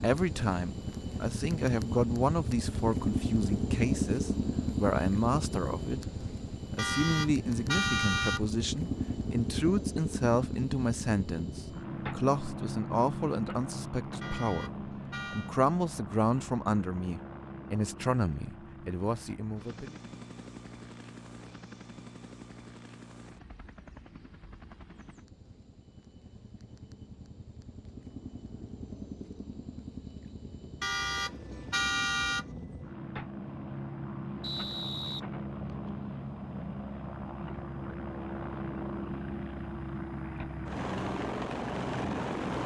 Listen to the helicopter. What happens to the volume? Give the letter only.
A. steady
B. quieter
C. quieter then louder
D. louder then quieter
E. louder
C.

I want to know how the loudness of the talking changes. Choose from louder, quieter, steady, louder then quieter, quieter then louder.
steady.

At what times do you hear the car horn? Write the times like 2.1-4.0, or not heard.
6.8-8.4, 14.2-15.6, 30.8-32.5.